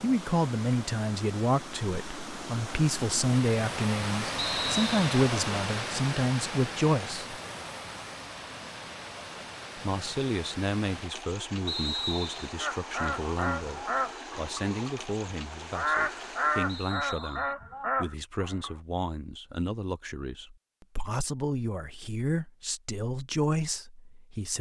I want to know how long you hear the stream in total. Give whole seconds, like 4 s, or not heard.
17 s.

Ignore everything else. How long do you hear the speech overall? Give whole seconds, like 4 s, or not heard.
22 s.